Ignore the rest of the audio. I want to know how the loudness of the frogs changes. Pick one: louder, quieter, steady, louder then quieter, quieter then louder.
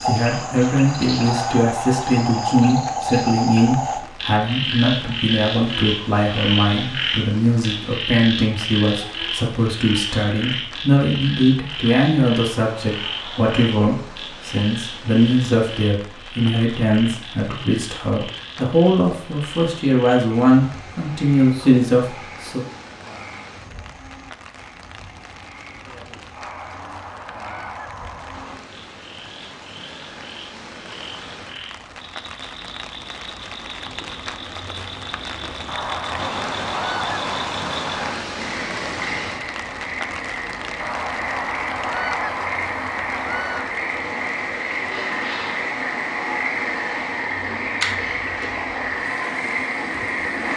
quieter then louder.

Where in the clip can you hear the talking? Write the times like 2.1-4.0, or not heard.
0.0-22.6.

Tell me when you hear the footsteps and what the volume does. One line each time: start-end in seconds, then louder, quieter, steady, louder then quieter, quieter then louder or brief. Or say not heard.
not heard.